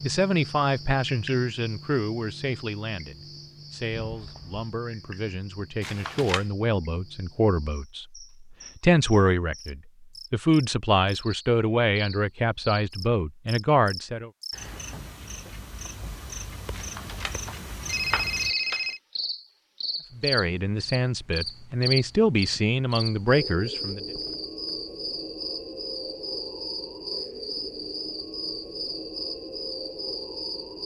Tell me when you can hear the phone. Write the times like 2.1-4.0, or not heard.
5.8-6.5, 16.7-19.0.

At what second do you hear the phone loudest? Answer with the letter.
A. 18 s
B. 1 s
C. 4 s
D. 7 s
A.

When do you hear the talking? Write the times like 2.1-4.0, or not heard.
0.0-14.3, 20.1-24.0.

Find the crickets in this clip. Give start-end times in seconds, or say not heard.
0.0-30.8.